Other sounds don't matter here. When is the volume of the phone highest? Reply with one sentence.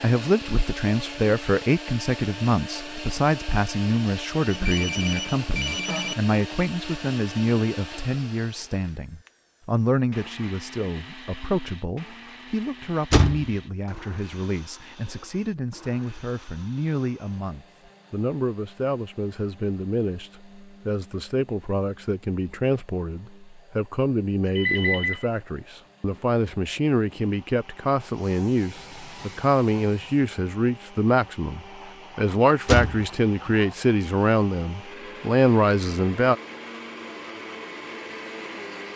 The volume of the phone peaks at 25 seconds.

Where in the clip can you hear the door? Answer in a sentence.
You can hear the door from 13.1 to 13.5 s and from 32.6 to 33.5 s.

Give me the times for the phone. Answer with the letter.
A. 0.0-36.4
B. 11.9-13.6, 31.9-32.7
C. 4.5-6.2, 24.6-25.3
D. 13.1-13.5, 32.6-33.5
C.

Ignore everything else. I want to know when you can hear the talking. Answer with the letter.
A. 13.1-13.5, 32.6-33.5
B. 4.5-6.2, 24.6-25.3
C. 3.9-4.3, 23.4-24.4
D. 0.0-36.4
D.